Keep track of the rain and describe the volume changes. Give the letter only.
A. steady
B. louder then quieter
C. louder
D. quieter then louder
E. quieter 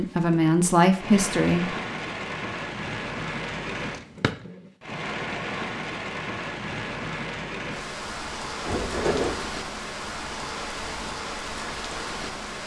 A.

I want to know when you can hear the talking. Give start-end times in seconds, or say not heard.
0.0-1.8.